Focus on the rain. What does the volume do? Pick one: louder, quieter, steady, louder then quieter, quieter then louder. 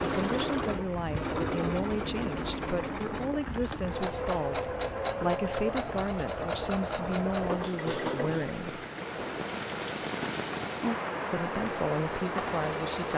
louder.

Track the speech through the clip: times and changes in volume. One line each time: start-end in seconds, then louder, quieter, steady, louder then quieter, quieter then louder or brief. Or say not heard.
0.1-8.8 steady
11.3-13.1 brief.